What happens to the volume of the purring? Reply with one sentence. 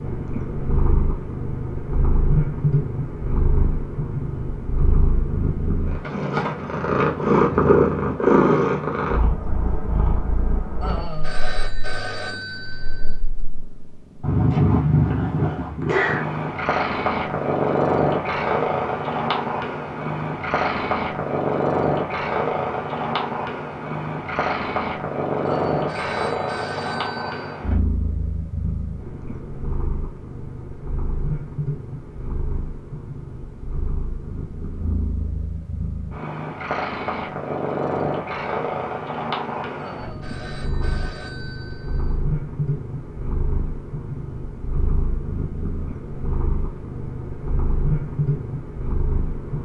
The loudness of the purring goes down.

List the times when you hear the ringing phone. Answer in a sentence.
The ringing phone can be heard from 10.8 to 13.3 s, from 25.4 to 27.6 s and from 39.8 to 42.2 s.